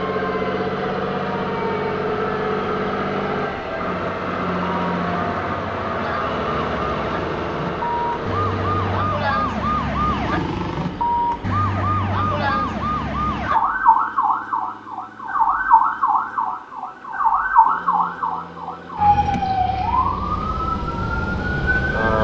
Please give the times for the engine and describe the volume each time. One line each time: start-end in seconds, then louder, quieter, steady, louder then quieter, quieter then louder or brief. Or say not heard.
0.0-22.1 quieter then louder.